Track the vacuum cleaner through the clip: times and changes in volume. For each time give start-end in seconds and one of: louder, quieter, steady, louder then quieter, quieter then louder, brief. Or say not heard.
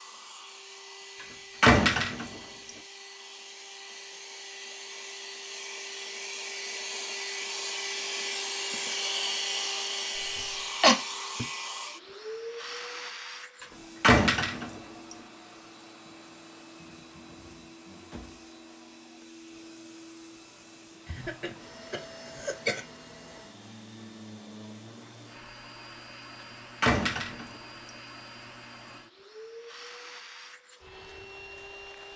0.0-32.1 louder then quieter.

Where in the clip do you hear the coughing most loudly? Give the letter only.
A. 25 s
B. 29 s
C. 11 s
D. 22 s
C.